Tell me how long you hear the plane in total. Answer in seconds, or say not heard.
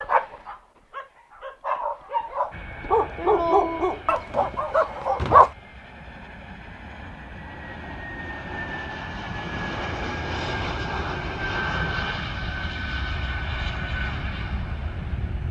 13 s.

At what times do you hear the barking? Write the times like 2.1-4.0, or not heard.
0.0-5.5.